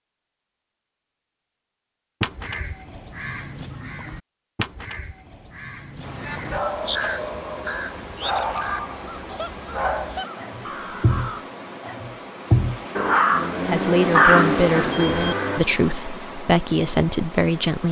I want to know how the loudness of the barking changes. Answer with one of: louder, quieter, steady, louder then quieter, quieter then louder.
louder.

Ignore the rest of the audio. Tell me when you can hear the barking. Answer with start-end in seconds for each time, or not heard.
6.2-15.6.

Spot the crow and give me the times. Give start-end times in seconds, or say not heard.
2.2-11.5.